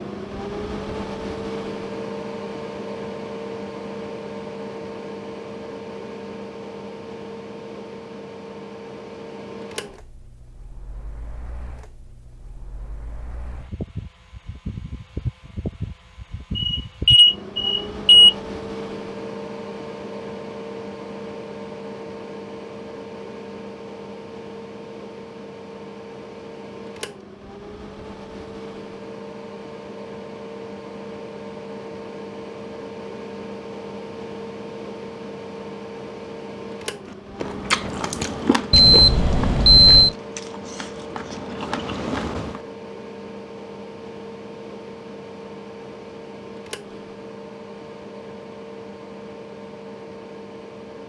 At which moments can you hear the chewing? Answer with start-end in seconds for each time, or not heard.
37.0-42.6.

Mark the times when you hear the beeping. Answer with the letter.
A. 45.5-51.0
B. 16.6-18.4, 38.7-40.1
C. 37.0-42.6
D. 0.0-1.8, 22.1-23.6
B.